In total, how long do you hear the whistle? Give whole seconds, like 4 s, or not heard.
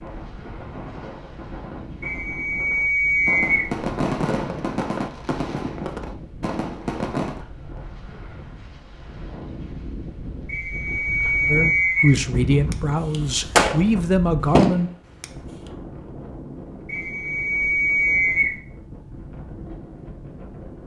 5 s.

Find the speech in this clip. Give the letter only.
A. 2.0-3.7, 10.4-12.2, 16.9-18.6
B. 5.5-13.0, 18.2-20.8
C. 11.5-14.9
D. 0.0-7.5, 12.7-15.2
C.